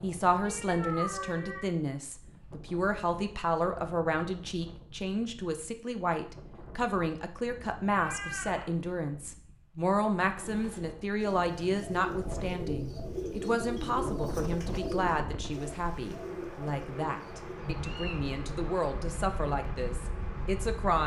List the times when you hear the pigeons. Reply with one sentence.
You can hear the pigeons from 10.3 to 17.7 s.